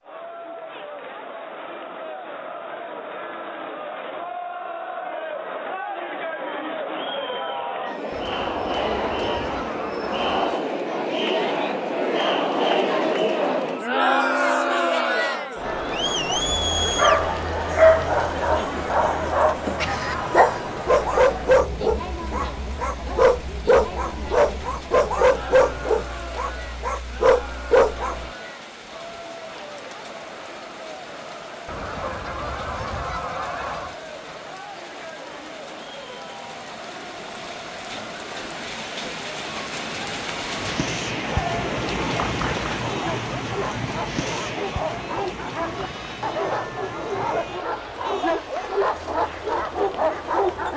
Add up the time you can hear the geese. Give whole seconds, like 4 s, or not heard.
5 s.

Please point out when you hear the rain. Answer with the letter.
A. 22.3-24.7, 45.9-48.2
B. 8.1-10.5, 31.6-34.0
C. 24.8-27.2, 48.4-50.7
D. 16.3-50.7
D.